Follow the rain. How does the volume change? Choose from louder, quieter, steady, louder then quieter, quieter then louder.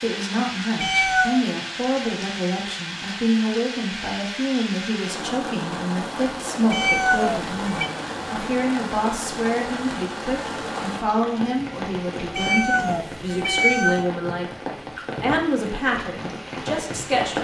steady.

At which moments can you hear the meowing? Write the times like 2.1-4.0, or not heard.
0.8-1.4, 6.7-7.9, 12.3-14.1.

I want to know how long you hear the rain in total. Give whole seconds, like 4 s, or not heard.
17 s.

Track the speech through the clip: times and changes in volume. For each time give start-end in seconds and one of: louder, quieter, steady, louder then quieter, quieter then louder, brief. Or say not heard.
0.0-14.5 steady
15.2-17.3 brief.